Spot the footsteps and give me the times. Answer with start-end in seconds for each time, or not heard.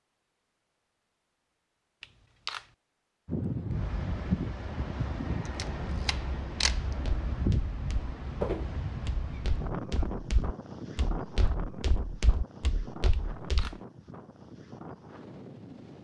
6.8-13.8.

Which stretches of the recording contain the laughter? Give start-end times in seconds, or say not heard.
not heard.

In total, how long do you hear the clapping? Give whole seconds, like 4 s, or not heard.
not heard.